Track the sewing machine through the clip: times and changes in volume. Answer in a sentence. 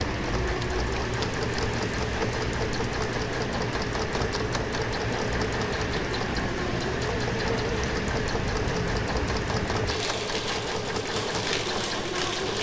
You can hear the sewing machine from 0.0 to 12.5 s, at a steady volume.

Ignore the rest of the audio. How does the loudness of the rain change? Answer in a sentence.
The volume of the rain stays about the same.